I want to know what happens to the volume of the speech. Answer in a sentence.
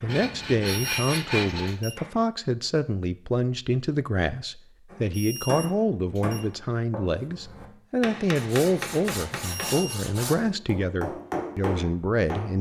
The loudness of the speech stays about the same.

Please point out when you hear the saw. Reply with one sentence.
The saw can be heard from 0.1 to 1.8 s and from 8.3 to 10.3 s.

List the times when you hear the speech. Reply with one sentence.
The speech can be heard from 0.0 to 12.5 s.